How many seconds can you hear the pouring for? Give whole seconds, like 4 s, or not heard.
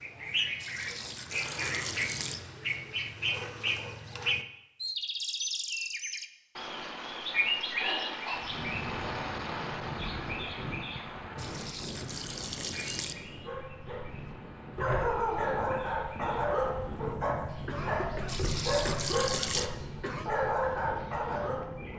5 s.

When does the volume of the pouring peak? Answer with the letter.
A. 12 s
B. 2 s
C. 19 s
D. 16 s
C.